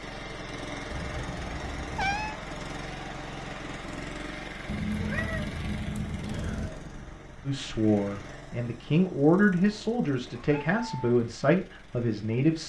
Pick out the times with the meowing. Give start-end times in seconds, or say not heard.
0.8-2.4, 4.7-6.7, 10.3-11.0.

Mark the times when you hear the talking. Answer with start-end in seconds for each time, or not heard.
7.5-12.6.